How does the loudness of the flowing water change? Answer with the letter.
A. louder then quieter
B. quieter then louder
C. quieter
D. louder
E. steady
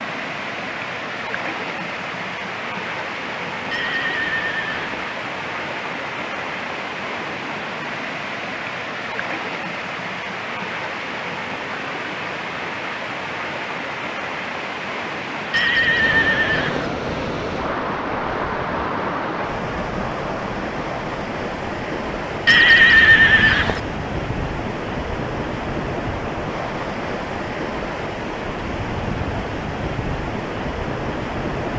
E.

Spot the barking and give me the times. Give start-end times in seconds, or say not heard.
not heard.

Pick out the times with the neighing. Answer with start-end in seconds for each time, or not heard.
3.7-5.0, 15.5-16.9, 22.4-23.8.